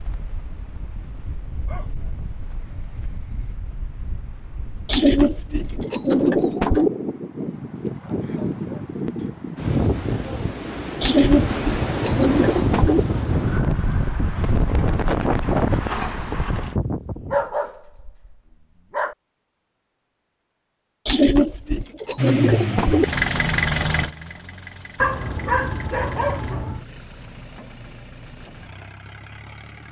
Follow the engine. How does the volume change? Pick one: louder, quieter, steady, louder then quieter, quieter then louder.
quieter.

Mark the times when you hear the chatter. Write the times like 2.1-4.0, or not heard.
not heard.